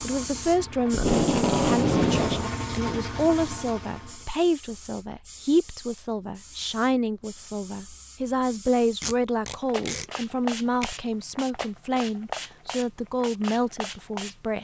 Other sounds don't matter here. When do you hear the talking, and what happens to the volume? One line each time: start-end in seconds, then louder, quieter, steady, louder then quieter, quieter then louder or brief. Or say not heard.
0.0-14.5 steady.